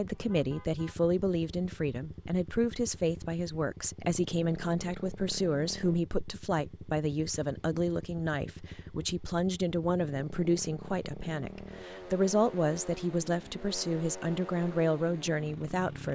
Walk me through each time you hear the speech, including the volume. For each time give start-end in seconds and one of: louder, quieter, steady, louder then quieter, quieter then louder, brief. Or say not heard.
0.0-16.0 steady.